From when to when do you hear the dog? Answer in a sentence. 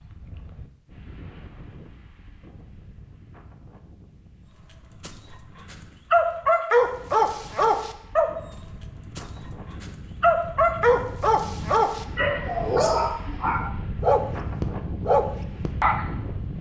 You can hear the dog from 5.0 to 16.1 s.